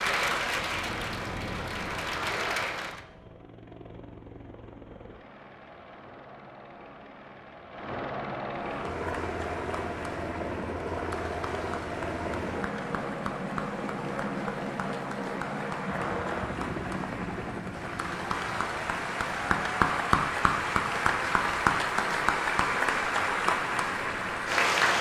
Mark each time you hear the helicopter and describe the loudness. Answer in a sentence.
You can hear the helicopter from 0.0 to 24.7 s, getting louder then quieter.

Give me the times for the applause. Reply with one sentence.
You can hear the applause from 0.0 to 3.0 s and from 8.6 to 24.9 s.